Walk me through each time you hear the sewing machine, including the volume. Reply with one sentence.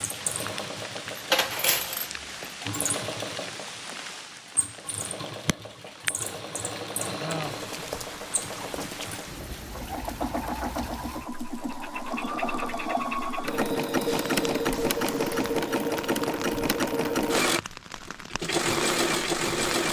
The sewing machine can be heard from 0.0 to 19.8 s, getting louder.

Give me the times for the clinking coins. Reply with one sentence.
The clinking coins can be heard from 1.1 to 2.5 s.